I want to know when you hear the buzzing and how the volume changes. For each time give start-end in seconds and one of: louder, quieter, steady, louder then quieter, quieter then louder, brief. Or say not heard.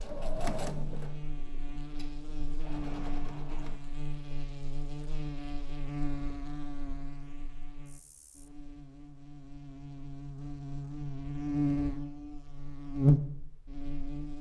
0.0-14.3 louder.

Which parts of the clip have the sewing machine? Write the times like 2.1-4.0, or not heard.
0.0-3.8.